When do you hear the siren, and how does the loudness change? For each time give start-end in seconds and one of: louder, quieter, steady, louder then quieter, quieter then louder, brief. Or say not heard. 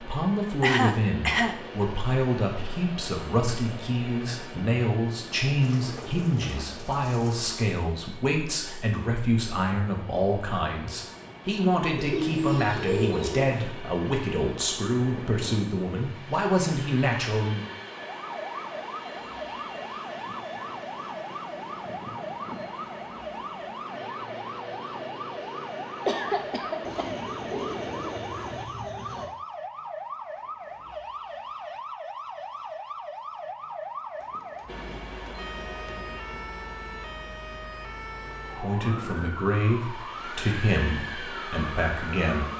18.1-42.5 steady.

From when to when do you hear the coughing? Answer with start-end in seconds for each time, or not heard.
0.6-1.9, 26.1-27.2.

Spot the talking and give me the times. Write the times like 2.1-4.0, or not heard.
0.0-17.6, 38.5-42.5.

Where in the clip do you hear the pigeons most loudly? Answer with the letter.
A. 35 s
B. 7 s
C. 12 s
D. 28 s
C.